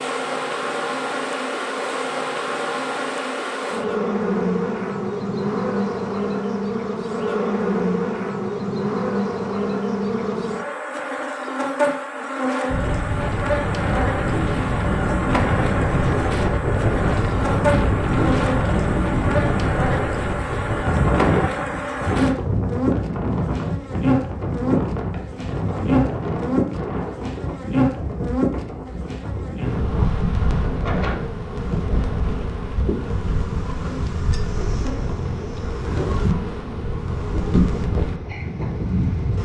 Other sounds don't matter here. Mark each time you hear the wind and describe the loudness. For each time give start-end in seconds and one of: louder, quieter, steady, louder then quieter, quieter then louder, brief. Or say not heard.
12.7-39.3 quieter.